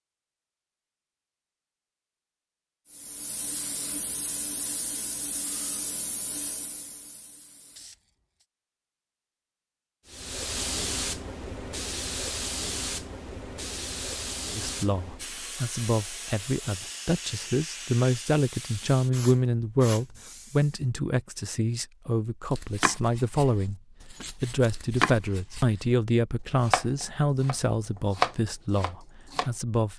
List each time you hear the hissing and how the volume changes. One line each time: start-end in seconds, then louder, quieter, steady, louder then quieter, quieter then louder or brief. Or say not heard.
2.9-8.4 quieter
10.1-20.9 quieter.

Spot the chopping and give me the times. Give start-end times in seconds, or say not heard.
22.5-25.9, 26.6-27.6, 28.1-29.5.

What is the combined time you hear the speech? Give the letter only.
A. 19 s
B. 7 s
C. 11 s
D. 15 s
D.